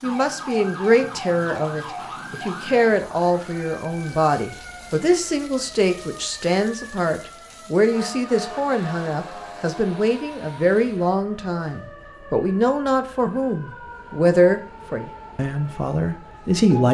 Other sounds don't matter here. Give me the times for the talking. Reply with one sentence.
You can hear the talking from 0.0 to 16.8 s.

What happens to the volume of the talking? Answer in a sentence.
The volume of the talking stays about the same.